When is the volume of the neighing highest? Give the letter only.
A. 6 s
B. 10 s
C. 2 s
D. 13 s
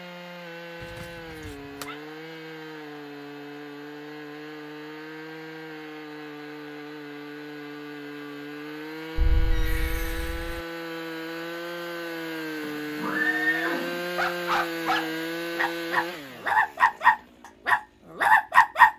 D.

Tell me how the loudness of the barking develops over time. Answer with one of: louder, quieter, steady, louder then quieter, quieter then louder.
louder.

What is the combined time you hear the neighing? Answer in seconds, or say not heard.
4 s.